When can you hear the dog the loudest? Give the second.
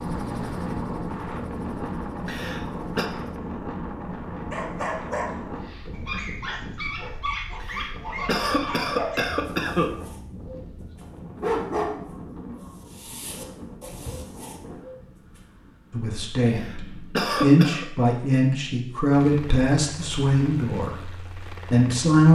12 s.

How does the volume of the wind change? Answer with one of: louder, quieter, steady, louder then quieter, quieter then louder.
quieter.